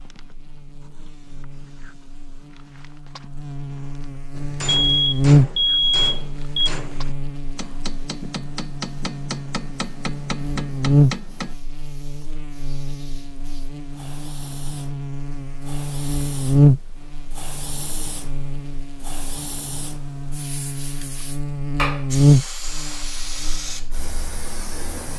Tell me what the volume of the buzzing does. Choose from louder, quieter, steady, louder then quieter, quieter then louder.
louder.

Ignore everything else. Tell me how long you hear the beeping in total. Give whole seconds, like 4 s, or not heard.
2 s.